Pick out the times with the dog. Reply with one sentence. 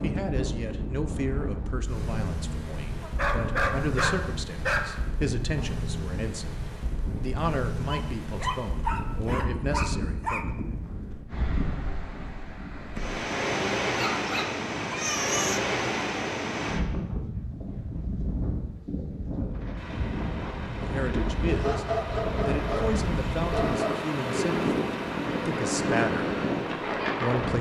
The dog can be heard from 3.0 to 5.0 s, from 7.8 to 10.4 s, from 13.9 to 15.6 s and from 21.4 to 24.0 s.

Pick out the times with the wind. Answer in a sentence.
You can hear the wind from 0.0 to 27.5 s.